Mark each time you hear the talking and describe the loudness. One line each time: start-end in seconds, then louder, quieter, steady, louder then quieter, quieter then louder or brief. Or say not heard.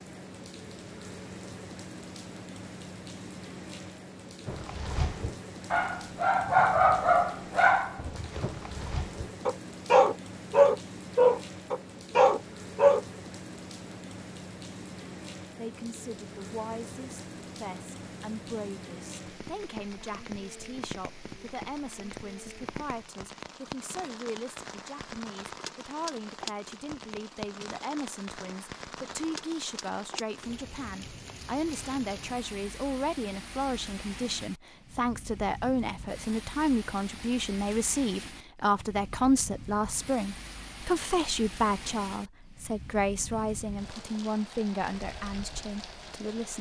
15.6-46.5 louder.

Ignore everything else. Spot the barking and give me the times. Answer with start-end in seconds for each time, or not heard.
4.5-13.0.